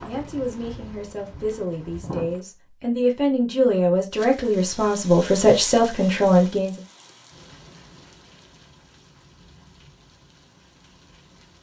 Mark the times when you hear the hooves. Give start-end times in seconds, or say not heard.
0.0-2.4.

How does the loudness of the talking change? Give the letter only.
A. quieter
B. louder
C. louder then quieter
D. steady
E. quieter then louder
B.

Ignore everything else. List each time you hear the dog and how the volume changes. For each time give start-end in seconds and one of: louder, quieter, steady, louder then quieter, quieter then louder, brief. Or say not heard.
not heard.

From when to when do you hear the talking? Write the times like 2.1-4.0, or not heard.
0.0-6.8.